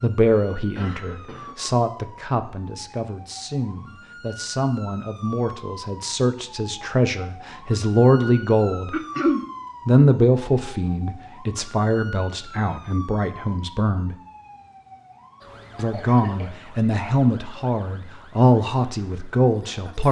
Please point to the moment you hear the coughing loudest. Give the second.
9 s.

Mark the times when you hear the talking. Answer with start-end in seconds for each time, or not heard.
0.0-8.9, 9.8-14.2, 15.8-20.0.